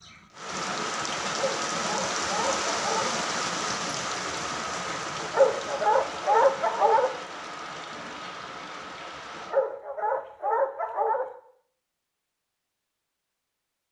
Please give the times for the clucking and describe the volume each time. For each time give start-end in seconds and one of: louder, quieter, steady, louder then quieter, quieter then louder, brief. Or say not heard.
not heard.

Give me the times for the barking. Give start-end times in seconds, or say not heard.
1.2-3.1, 5.2-7.1, 9.3-11.2.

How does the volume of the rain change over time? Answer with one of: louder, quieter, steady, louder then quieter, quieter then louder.
quieter.